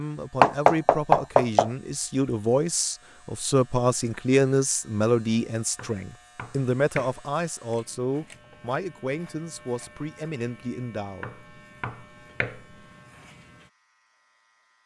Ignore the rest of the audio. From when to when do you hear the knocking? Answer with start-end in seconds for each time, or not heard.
0.4-1.7, 5.8-7.2, 11.2-12.6.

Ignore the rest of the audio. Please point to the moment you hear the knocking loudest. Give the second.
1 s.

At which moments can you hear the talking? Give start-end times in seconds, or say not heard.
0.0-11.2.